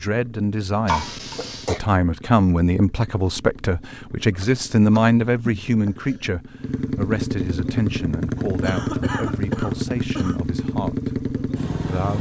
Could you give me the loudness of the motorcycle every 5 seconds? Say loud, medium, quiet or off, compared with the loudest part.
quiet, loud, loud.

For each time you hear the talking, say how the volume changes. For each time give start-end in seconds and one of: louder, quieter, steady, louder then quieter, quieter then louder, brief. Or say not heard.
0.0-12.1 quieter.